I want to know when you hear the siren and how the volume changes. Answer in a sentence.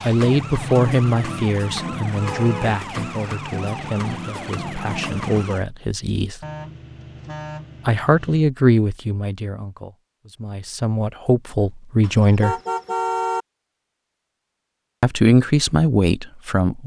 You can hear the siren from 0.0 to 5.7 s, at a steady volume.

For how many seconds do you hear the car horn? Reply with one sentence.
You can hear the car horn for 4 seconds altogether.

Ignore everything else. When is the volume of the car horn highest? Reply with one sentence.
The loudest moment of the car horn is at 13 seconds.